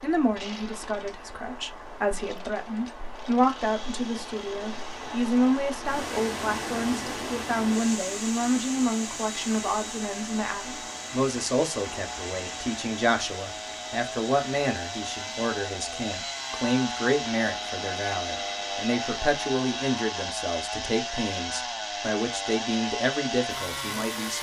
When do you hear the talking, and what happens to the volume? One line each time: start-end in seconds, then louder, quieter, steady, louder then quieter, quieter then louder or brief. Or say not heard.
0.0-24.3 steady.